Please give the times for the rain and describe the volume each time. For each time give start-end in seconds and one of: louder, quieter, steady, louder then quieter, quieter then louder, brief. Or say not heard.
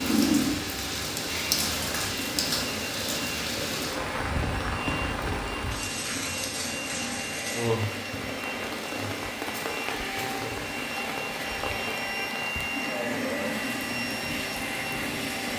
0.0-15.5 quieter.